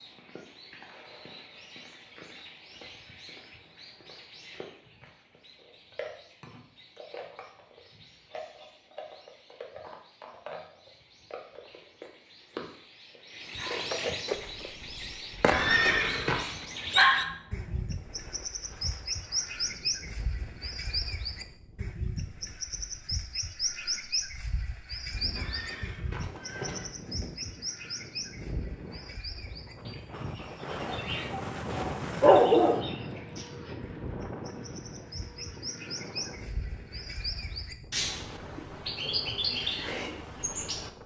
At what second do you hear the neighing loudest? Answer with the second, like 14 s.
16 s.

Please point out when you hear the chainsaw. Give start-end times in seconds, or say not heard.
not heard.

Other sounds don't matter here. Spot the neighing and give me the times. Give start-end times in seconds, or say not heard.
15.5-16.4, 25.4-26.9.